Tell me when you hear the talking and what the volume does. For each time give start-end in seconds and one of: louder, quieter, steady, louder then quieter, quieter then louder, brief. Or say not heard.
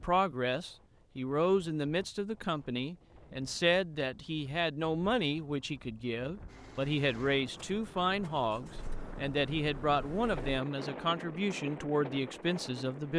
0.0-13.1 steady.